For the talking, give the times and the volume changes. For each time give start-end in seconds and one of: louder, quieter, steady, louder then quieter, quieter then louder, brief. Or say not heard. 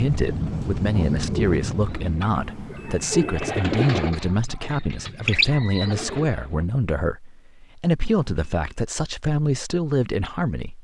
0.0-10.7 steady.